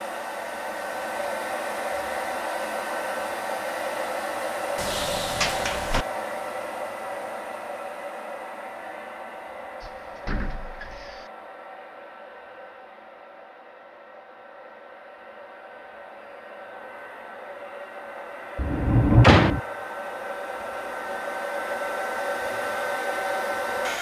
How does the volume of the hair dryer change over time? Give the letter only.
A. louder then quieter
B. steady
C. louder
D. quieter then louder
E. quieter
D.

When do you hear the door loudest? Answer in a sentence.
The volume of the door peaks at 19 seconds.